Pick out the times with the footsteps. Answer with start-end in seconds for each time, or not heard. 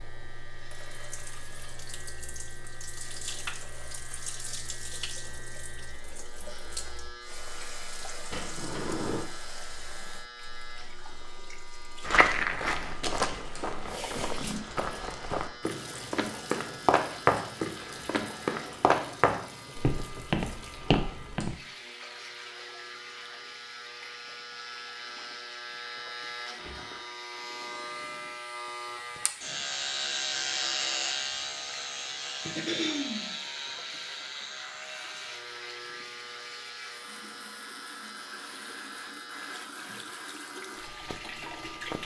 12.0-21.6.